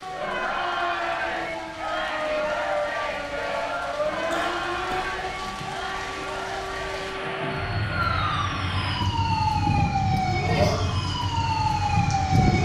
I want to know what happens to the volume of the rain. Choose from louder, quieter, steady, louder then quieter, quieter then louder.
louder.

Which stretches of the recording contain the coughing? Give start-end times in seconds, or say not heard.
4.3-5.8.